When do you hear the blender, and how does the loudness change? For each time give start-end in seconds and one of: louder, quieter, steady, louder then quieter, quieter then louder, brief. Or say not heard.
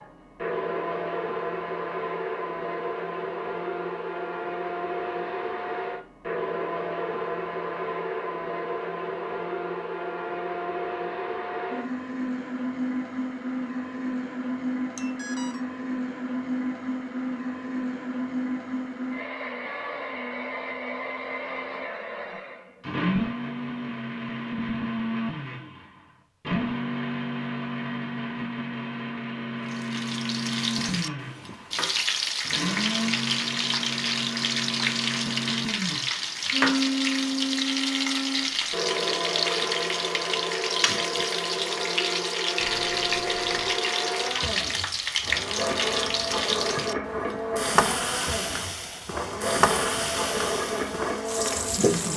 0.0-52.1 steady.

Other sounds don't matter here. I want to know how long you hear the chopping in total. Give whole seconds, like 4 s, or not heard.
not heard.